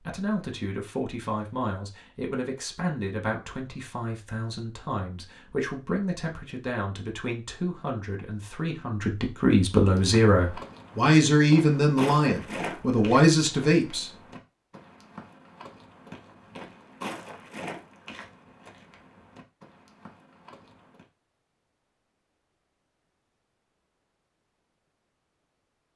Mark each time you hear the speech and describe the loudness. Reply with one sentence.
You can hear the speech from 0.0 to 14.1 s, getting louder.